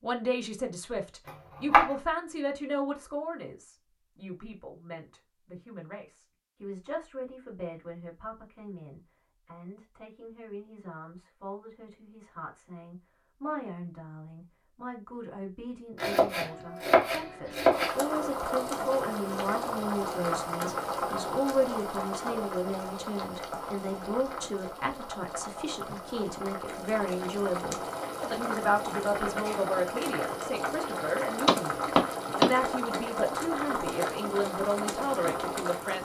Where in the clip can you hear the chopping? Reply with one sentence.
The chopping can be heard from 1.2 to 1.9 s, from 16.0 to 17.9 s and from 31.4 to 32.5 s.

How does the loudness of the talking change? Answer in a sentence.
The volume of the talking goes down, then up.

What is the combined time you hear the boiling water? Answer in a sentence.
The boiling water can be heard for 18 seconds in total.